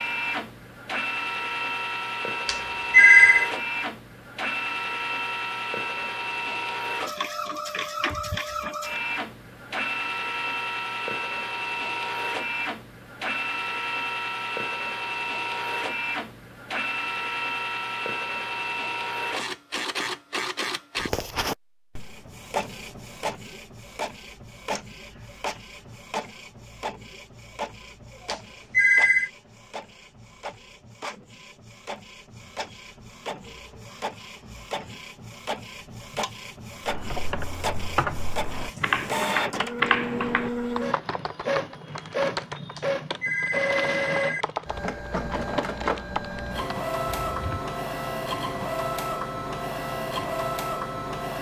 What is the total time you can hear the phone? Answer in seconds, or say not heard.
4 s.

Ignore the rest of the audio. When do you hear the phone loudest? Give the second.
3 s.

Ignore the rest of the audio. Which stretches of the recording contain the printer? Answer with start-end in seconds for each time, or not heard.
0.0-51.3.